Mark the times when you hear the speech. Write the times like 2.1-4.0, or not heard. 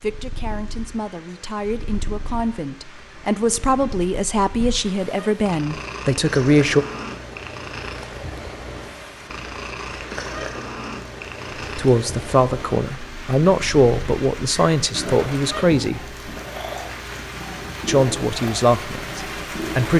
0.0-6.8, 11.8-16.0, 17.9-19.9.